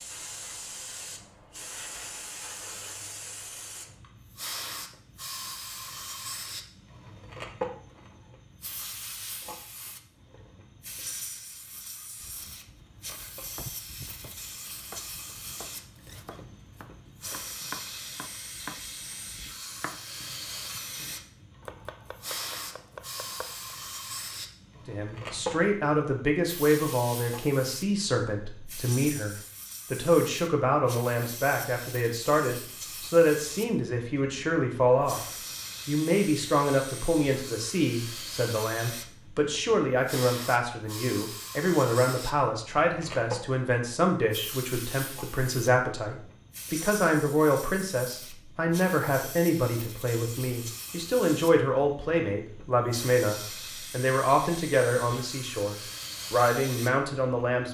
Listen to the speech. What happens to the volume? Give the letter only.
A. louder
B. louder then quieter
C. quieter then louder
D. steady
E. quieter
D.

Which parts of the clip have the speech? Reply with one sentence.
You can hear the speech from 24.9 to 57.6 s.